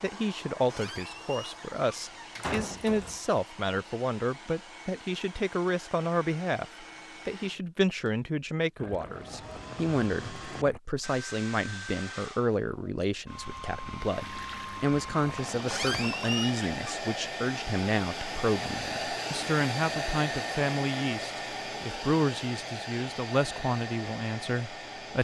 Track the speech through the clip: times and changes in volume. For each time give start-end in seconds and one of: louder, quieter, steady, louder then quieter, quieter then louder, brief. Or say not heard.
0.0-25.2 steady.